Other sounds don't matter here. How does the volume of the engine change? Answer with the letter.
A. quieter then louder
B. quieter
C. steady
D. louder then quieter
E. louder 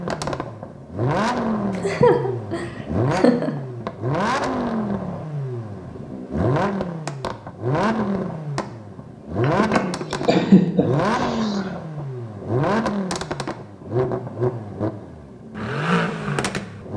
C.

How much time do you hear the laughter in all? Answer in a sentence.
You can hear the laughter for 4 seconds altogether.